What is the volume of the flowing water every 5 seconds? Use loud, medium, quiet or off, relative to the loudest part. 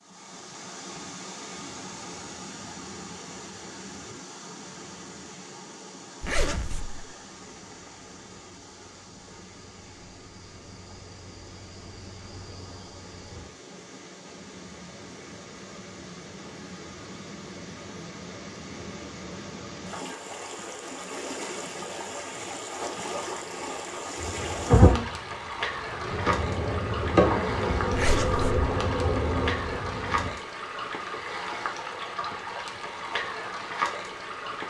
medium, quiet, quiet, medium, loud, loud, loud.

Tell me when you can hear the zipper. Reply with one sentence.
You can hear the zipper from 6.2 to 7.1 s and from 27.9 to 28.5 s.